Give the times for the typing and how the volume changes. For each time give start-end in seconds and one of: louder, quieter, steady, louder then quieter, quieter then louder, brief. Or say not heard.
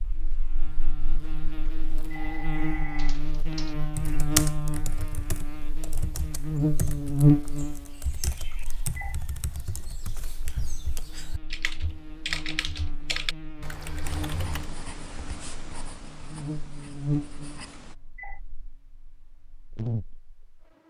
3.0-14.7 quieter then louder.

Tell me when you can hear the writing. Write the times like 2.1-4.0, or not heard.
14.0-17.9.